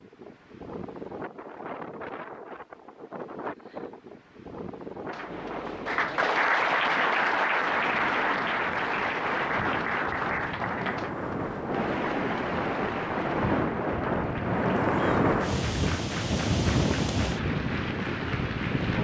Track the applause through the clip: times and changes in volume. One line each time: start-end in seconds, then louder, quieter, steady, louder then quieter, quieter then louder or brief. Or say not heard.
5.1-19.0 quieter.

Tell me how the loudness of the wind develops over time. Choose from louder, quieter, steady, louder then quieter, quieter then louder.
louder.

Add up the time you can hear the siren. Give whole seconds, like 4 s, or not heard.
not heard.